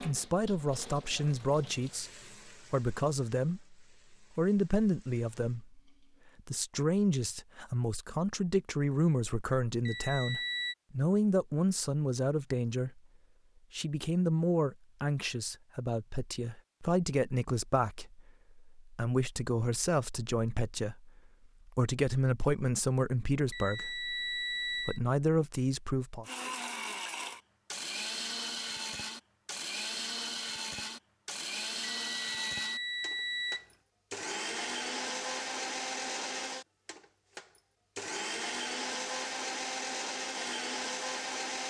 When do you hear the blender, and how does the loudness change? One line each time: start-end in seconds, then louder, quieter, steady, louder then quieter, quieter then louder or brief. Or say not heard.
26.2-41.6 steady.